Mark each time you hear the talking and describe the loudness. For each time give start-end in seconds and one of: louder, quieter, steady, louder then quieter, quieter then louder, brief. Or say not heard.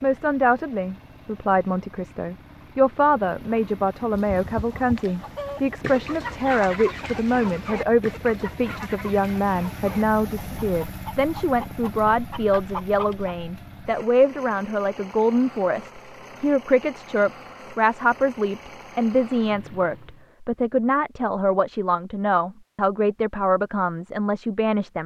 0.0-25.0 steady.